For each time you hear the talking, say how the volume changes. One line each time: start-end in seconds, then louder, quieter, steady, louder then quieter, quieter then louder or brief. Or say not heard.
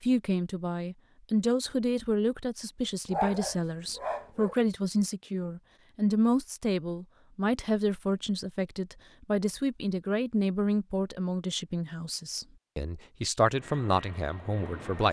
0.0-15.0 steady.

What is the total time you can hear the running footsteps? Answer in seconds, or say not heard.
not heard.